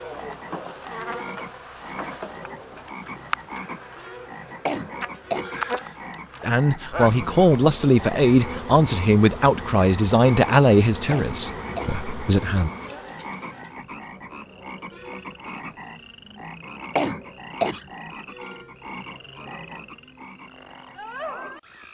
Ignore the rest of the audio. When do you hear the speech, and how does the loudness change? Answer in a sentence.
You can hear the speech from 6.4 to 12.7 s, getting quieter.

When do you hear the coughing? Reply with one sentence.
You can hear the coughing from 4.7 to 5.5 s, from 11.1 to 11.9 s and from 16.9 to 17.8 s.